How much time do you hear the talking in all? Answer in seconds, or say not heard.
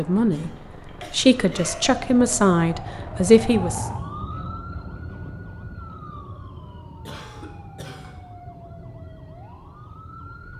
3 s.